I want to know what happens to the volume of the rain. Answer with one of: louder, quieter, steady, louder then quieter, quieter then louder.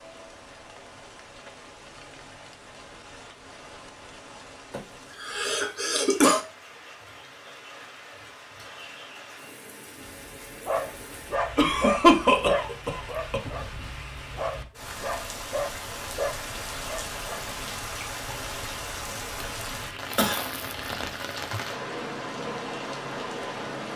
louder.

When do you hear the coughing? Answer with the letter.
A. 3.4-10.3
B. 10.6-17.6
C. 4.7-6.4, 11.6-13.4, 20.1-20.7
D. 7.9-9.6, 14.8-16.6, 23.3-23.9
C.